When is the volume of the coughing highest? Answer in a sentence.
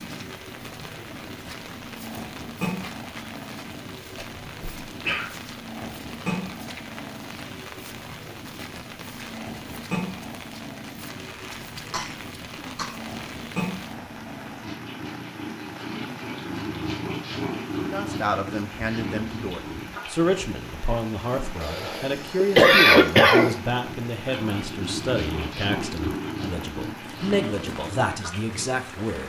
The loudest moment of the coughing is at 23 seconds.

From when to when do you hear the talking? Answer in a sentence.
You can hear the talking from 17.8 to 29.2 s.